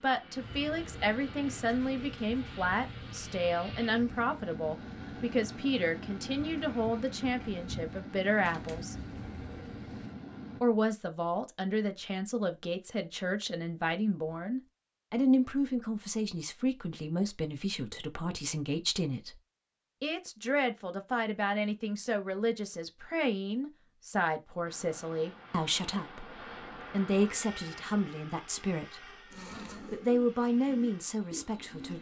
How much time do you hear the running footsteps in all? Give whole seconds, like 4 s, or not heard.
not heard.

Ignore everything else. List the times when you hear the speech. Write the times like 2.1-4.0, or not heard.
0.0-8.9, 10.6-19.4, 20.0-29.1, 29.8-31.9.